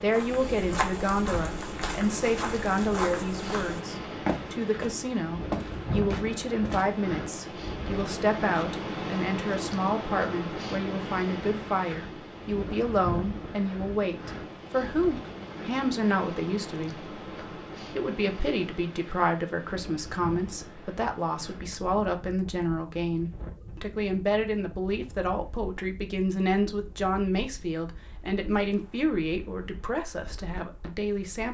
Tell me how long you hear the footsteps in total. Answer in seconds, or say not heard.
7 s.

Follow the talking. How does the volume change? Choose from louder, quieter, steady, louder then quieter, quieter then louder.
steady.